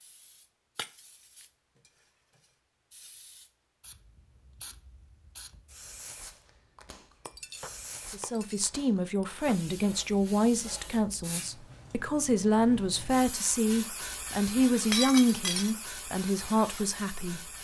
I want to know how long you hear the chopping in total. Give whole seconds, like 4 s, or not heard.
not heard.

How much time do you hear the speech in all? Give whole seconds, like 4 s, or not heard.
9 s.